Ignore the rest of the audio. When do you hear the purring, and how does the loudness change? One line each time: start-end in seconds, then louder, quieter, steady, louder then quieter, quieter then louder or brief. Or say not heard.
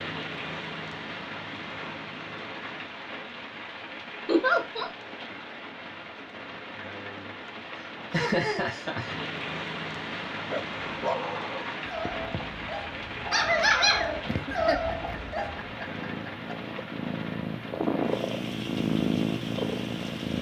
11.8-20.3 louder.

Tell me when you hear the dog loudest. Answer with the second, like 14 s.
14 s.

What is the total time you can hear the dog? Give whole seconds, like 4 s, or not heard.
5 s.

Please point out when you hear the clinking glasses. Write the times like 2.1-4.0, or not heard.
not heard.